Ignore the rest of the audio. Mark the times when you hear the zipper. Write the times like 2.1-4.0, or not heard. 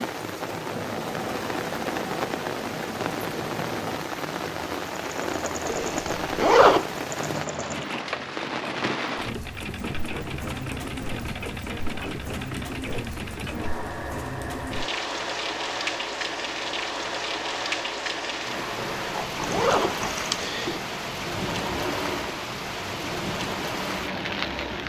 5.7-6.8, 19.4-20.8.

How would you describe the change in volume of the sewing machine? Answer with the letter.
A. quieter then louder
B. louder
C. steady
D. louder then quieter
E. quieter
C.